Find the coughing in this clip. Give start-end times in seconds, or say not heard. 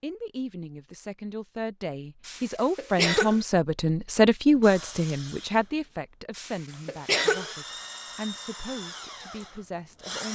2.2-3.4, 6.3-7.5.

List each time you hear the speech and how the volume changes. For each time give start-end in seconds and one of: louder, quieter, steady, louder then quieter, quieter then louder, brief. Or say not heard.
0.0-10.2 louder then quieter.